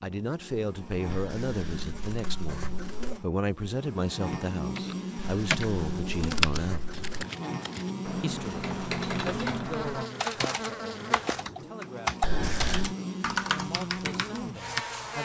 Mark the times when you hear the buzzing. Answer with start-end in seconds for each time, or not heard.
0.0-15.1.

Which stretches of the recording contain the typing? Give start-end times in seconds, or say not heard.
4.8-14.8.